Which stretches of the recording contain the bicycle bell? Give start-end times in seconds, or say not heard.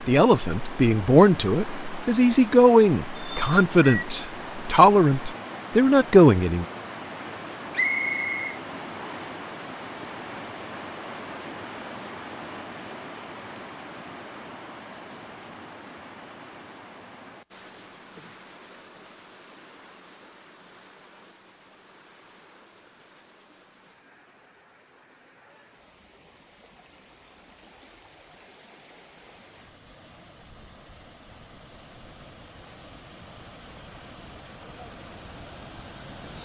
3.1-4.1.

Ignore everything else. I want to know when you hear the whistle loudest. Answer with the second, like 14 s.
8 s.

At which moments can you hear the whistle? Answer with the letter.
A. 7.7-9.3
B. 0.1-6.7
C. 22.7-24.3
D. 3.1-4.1
A.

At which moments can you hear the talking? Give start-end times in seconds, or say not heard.
0.1-6.7.